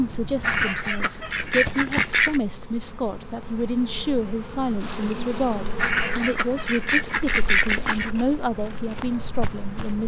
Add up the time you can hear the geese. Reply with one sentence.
The geese can be heard for 4 seconds in total.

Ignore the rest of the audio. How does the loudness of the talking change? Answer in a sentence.
The volume of the talking stays about the same.